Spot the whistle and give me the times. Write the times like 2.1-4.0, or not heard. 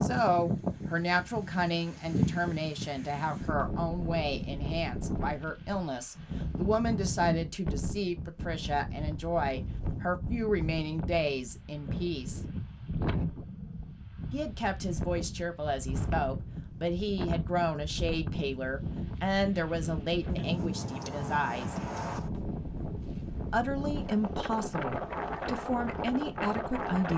not heard.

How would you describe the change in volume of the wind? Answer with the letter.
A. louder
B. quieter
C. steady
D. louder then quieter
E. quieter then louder
C.